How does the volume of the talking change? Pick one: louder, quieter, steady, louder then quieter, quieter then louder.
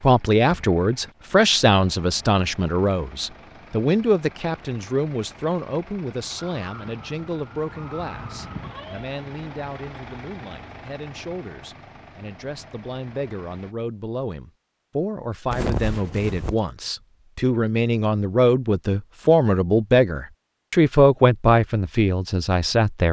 quieter then louder.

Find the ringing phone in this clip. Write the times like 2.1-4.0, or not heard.
15.5-16.6.